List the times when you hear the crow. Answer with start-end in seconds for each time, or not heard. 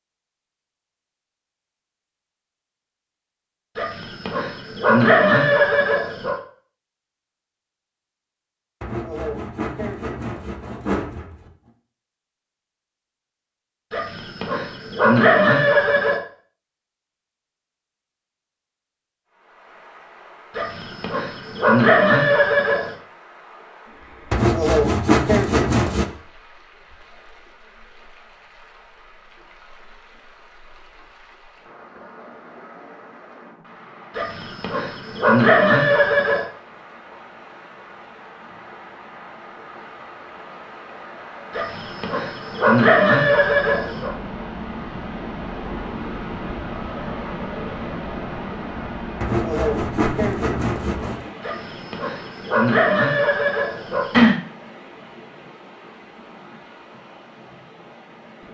not heard.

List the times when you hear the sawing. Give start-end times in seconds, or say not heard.
8.8-11.5, 24.3-26.1, 49.2-51.3.